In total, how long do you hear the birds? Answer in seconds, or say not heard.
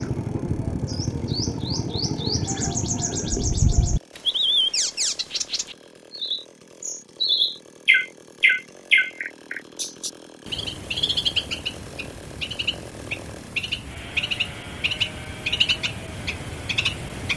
17 s.